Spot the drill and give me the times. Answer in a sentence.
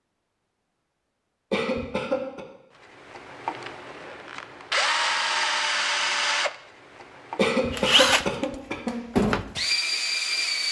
The drill can be heard from 3.0 to 10.6 s.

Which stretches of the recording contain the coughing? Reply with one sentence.
You can hear the coughing from 1.5 to 2.5 s and from 7.3 to 8.9 s.